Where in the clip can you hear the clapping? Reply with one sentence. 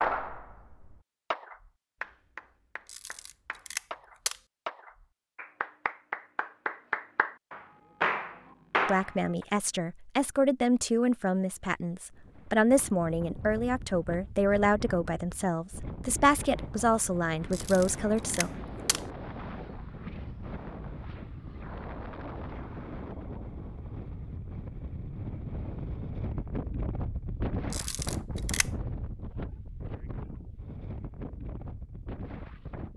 You can hear the clapping from 0.0 to 9.4 s.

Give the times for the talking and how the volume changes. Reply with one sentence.
The talking can be heard from 8.8 to 18.5 s, at a steady volume.